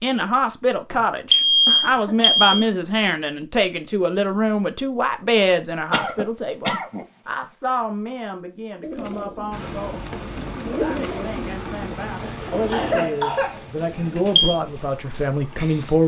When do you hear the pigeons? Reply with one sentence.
You can hear the pigeons from 8.8 to 15.9 s.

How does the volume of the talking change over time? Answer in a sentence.
The loudness of the talking goes down, then up.